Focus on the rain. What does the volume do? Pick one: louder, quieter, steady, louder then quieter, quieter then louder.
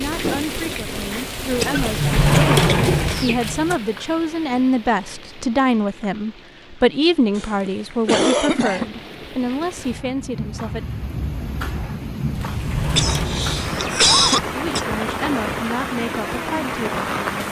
quieter then louder.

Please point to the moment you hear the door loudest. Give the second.
2 s.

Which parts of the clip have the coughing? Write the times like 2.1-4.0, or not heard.
1.6-3.4, 7.3-8.8, 12.9-14.8.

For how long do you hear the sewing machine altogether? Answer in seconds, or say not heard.
not heard.